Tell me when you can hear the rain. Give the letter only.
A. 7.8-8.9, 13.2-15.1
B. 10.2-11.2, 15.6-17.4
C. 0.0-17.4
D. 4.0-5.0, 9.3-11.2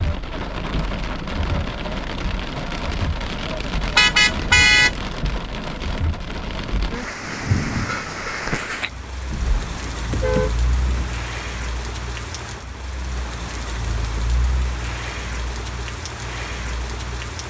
C.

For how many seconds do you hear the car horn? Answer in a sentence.
The car horn can be heard for 3 seconds in total.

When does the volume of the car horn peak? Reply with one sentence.
The loudest moment of the car horn is at 5 seconds.